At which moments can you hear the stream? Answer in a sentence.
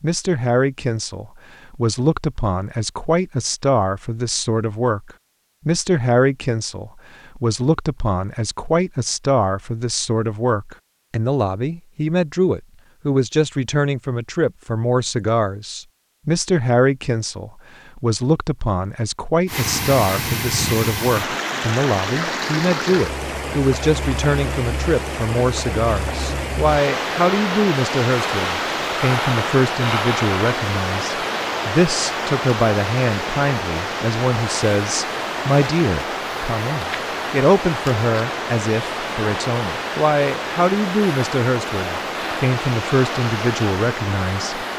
The stream can be heard from 19.4 to 44.7 s.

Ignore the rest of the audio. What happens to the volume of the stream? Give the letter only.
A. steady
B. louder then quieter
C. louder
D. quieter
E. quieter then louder
A.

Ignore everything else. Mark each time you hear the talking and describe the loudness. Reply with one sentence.
You can hear the talking from 0.0 to 44.6 s, at a steady volume.